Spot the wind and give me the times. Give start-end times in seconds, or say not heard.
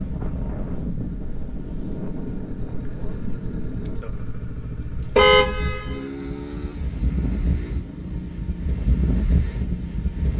0.0-10.3.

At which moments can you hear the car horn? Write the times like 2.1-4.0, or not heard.
5.2-6.0.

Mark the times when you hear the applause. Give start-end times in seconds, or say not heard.
not heard.